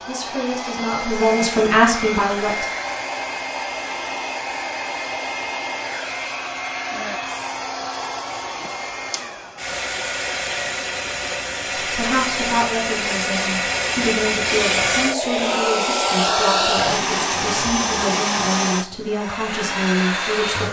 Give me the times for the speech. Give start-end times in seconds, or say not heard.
0.1-2.6, 11.8-20.6.